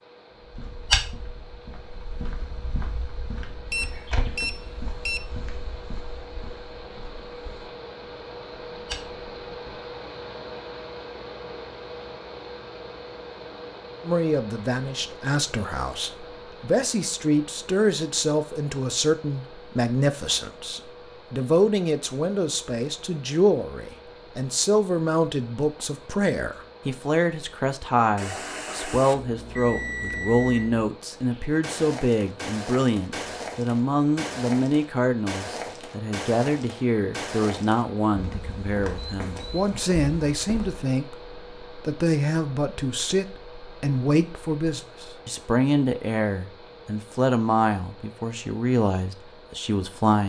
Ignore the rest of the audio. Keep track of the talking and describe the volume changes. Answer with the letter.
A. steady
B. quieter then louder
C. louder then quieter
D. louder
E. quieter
A.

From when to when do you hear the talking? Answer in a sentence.
You can hear the talking from 14.0 to 50.2 s.